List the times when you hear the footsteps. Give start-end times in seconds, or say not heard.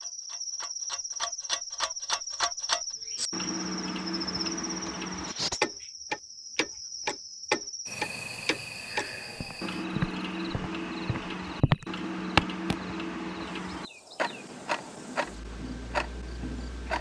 9.3-12.8.